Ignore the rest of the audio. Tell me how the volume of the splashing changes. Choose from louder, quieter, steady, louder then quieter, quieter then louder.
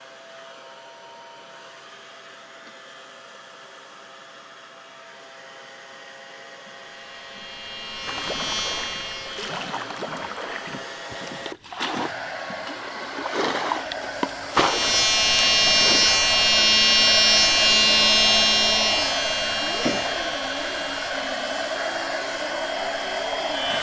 louder.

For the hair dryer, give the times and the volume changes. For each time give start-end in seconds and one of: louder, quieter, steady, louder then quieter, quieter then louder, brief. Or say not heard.
0.0-23.7 louder.